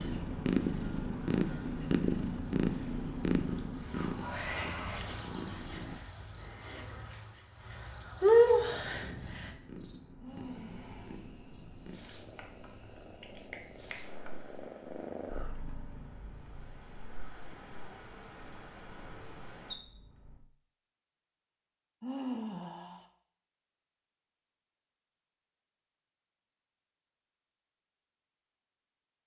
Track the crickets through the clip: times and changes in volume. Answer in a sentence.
You can hear the crickets from 0.0 to 19.8 s, getting louder then quieter.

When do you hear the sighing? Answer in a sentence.
You can hear the sighing from 6.7 to 7.2 s, from 10.2 to 11.2 s and from 22.0 to 23.1 s.